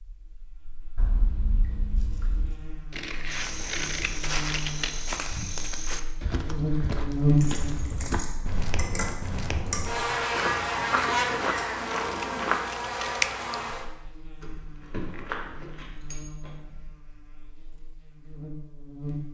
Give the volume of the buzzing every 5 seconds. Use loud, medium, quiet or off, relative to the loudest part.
quiet, loud, loud, quiet.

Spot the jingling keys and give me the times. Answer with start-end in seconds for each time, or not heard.
0.9-2.5, 7.3-9.8, 14.4-16.3.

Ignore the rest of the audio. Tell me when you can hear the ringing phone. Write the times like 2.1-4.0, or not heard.
not heard.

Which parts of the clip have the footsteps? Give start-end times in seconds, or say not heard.
3.3-12.7, 14.8-16.9.